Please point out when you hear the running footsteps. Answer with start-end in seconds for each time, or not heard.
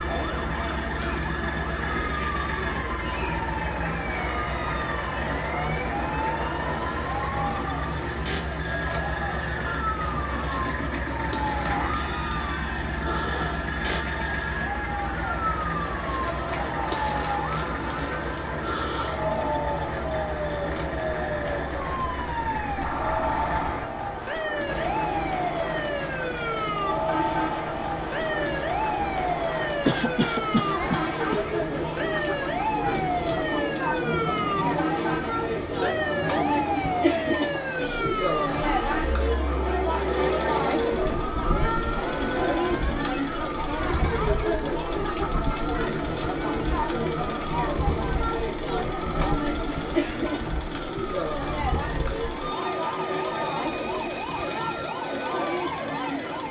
not heard.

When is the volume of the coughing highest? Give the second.
30 s.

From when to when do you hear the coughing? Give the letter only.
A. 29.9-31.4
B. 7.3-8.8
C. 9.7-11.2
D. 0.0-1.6
A.